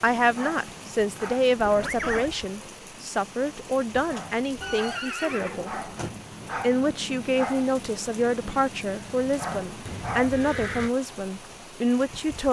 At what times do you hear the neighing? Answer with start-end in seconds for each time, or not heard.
1.6-2.3, 4.6-5.8, 9.8-10.9.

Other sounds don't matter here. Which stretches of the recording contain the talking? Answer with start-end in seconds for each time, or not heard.
0.0-5.7, 6.6-12.4.